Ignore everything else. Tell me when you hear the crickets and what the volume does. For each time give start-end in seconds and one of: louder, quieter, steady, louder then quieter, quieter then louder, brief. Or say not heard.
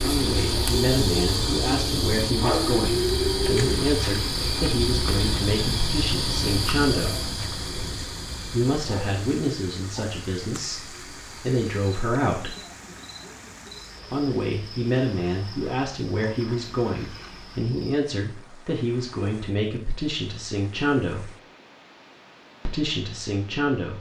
0.0-18.1 quieter.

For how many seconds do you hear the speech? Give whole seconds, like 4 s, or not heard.
20 s.